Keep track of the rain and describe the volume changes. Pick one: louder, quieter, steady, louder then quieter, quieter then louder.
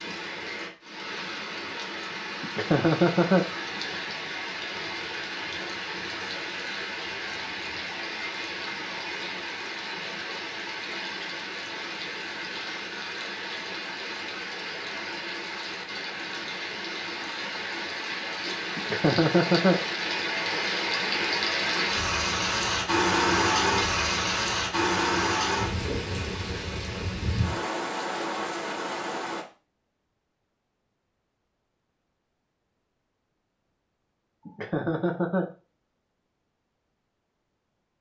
louder.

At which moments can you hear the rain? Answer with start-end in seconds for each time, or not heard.
0.0-29.4.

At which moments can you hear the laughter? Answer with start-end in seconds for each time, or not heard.
2.4-3.5, 18.8-19.8, 34.5-35.5.